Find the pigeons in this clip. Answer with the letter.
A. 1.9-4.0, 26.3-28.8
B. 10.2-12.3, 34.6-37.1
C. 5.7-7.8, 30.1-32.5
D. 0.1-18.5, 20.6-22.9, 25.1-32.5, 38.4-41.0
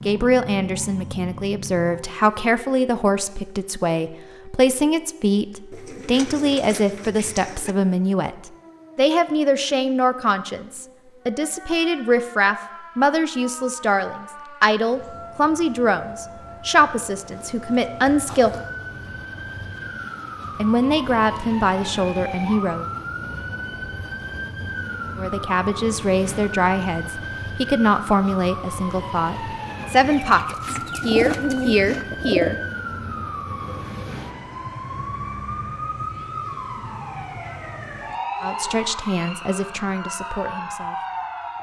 C.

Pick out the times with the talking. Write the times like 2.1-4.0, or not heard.
0.1-18.5, 20.6-22.9, 25.1-32.5, 38.4-41.0.